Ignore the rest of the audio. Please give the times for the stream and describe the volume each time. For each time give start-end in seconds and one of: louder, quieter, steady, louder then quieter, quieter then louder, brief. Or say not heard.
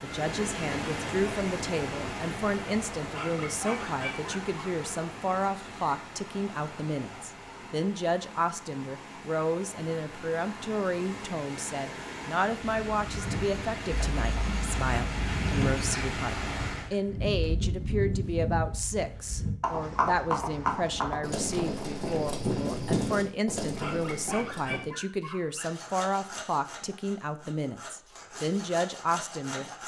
0.0-16.9 quieter then louder.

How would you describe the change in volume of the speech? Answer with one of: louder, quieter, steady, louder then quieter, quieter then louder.
steady.